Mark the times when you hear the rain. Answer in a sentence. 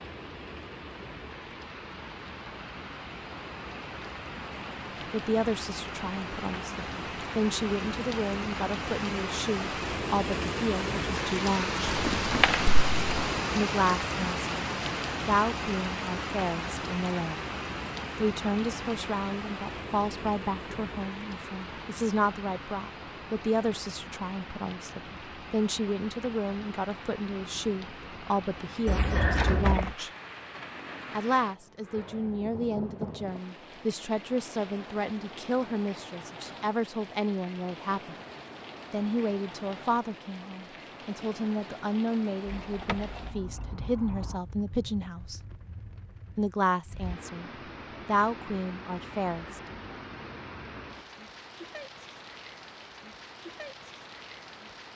The rain can be heard from 0.0 to 54.9 s.